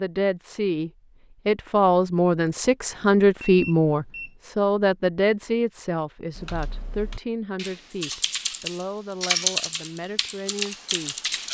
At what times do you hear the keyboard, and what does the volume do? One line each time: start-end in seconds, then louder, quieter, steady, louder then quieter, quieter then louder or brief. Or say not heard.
6.3-11.4 louder then quieter.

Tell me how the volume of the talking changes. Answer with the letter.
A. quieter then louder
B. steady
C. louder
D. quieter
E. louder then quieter
D.